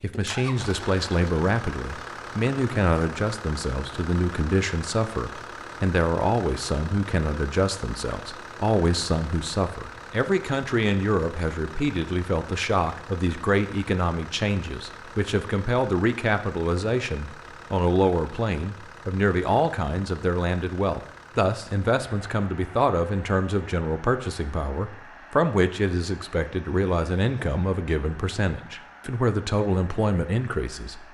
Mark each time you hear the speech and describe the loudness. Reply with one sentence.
You can hear the speech from 0.0 to 31.0 s, at a steady volume.